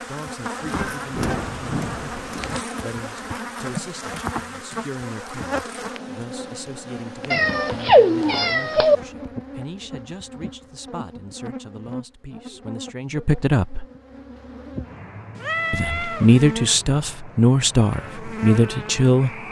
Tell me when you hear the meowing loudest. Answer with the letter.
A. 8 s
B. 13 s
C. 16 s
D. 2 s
A.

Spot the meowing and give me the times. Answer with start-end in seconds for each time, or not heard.
0.8-2.6, 7.3-8.9, 15.3-16.4.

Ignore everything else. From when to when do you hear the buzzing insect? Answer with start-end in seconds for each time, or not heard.
0.0-19.4.